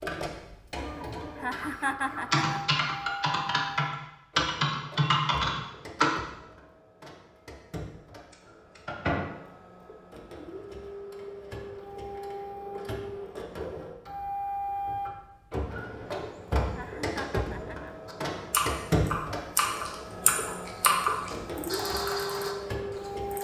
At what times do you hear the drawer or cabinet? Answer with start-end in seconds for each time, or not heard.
not heard.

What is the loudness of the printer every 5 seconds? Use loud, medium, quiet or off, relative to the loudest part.
medium, quiet, loud, loud, loud.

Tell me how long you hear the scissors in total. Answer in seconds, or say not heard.
3 s.